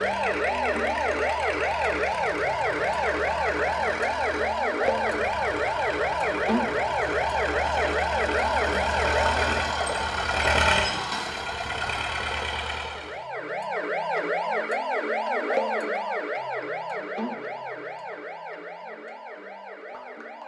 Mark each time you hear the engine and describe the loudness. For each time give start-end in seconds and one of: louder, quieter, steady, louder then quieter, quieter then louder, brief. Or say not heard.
0.0-13.2 louder.